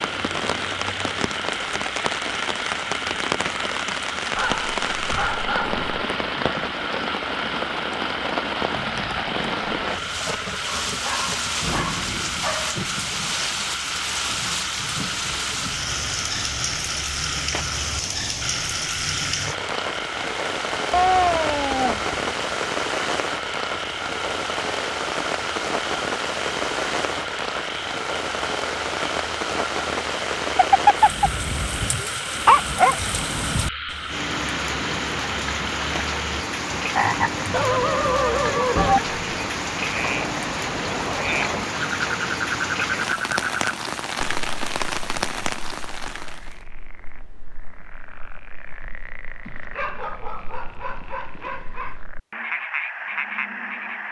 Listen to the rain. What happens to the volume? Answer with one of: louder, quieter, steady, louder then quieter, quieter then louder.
steady.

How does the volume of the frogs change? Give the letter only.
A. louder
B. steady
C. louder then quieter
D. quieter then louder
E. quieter
B.